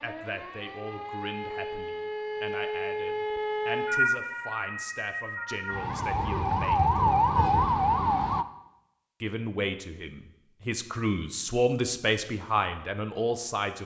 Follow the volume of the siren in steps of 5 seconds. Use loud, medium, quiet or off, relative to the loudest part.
medium, loud, off.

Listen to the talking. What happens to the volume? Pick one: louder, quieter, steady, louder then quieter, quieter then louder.
louder.